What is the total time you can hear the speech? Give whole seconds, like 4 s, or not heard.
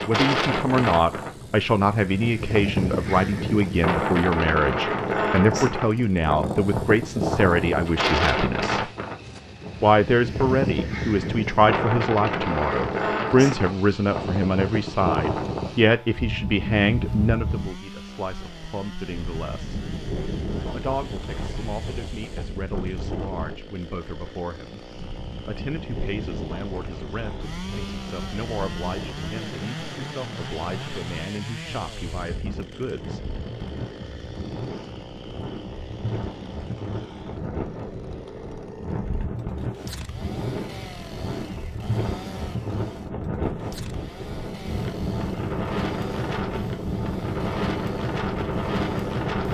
31 s.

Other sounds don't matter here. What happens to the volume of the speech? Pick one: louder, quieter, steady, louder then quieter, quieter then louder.
quieter.